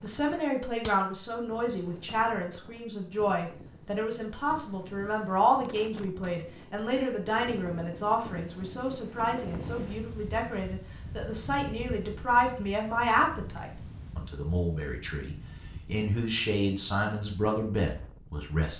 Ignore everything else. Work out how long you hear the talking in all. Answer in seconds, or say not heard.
19 s.